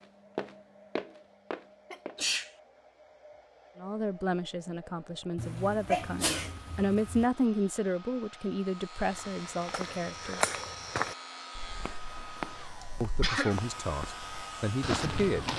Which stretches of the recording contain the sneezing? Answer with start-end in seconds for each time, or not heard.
1.9-2.5, 5.3-7.2, 12.8-13.6.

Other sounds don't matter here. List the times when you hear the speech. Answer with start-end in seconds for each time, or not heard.
3.8-10.6, 13.0-15.5.